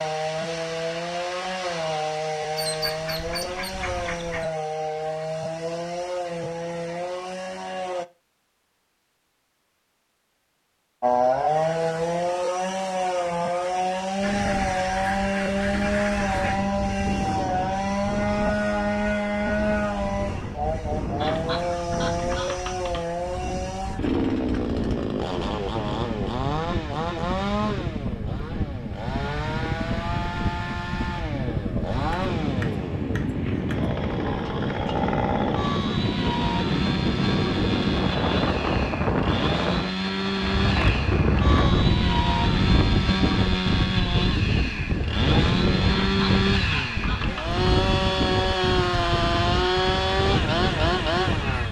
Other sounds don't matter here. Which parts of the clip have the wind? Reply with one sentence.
The wind can be heard from 14.2 to 51.6 s.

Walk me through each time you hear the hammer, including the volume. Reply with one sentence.
The hammer can't be heard in this clip.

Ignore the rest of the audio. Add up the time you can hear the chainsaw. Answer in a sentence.
The chainsaw can be heard for 49 seconds in total.